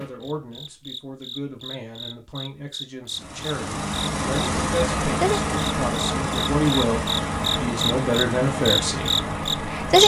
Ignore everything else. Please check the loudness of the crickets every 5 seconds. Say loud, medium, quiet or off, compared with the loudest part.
quiet, loud.